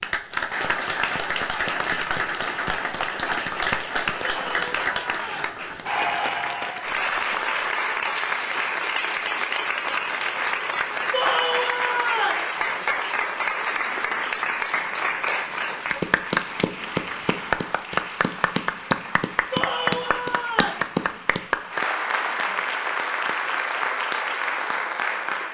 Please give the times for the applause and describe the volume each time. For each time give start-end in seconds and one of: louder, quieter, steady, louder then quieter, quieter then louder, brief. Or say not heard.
0.0-25.4 steady.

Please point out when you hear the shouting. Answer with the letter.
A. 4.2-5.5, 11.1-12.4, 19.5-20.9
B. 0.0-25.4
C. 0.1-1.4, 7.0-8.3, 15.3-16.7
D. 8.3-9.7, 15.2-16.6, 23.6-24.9
A.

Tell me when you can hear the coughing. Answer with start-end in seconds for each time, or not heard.
not heard.